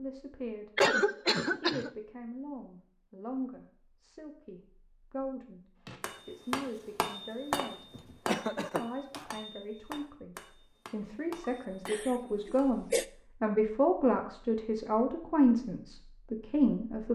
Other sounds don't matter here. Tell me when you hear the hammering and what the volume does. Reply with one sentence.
You can hear the hammering from 5.8 to 12.7 s, getting quieter.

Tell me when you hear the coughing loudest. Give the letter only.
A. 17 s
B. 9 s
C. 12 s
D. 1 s
D.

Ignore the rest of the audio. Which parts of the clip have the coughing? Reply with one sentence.
You can hear the coughing from 0.8 to 1.9 s, from 8.0 to 9.3 s and from 11.4 to 13.1 s.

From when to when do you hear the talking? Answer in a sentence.
The talking can be heard from 0.0 to 0.7 s, from 1.4 to 5.6 s and from 6.2 to 17.1 s.